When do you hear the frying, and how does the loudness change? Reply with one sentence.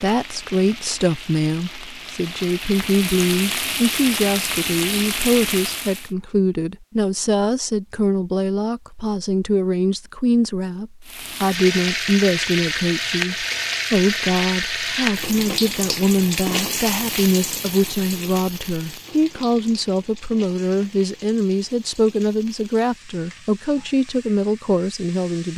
You can hear the frying from 0.0 to 6.1 s, getting louder; and from 11.1 to 25.5 s, getting quieter.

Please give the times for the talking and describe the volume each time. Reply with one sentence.
The talking can be heard from 0.0 to 25.5 s, at a steady volume.